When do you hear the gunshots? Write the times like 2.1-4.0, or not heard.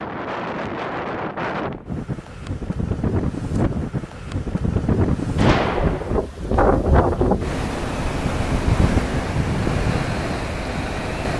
5.3-6.2.